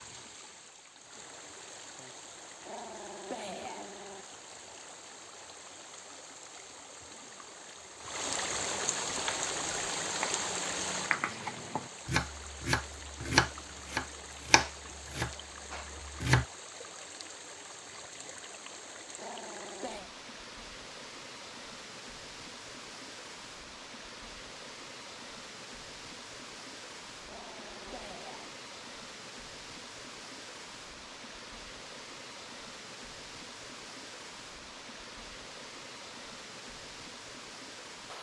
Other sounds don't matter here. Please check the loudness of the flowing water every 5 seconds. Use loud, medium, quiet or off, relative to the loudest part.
medium, loud, loud, medium, medium, medium, medium, medium.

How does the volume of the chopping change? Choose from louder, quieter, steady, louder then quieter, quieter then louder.
louder then quieter.